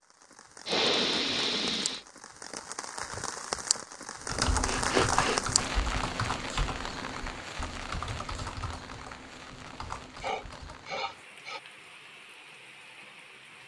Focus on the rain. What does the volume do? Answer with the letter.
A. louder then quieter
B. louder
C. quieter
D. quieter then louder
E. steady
A.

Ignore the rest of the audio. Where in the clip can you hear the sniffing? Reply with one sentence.
The sniffing can be heard from 0.7 to 2.0 s, from 4.7 to 5.4 s and from 10.2 to 11.6 s.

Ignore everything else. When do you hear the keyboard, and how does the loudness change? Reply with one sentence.
You can hear the keyboard from 4.2 to 10.9 s, getting quieter.